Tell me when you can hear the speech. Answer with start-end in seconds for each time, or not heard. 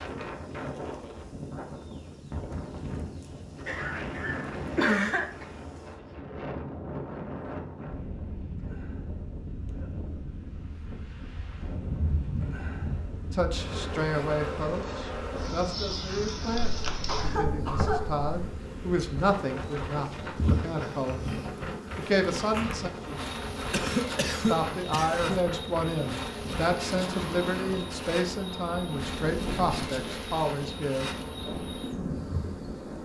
13.3-21.2, 21.9-22.9, 24.4-31.1.